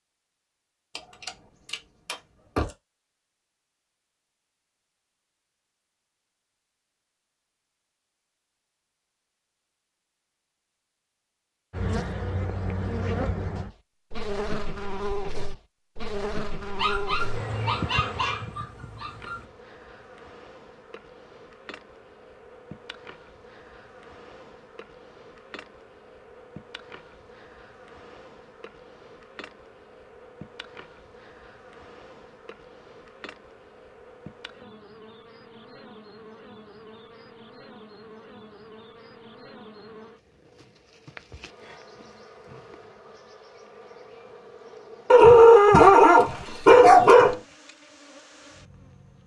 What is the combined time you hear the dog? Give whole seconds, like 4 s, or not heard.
7 s.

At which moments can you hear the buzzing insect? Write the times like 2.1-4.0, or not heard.
11.7-49.2.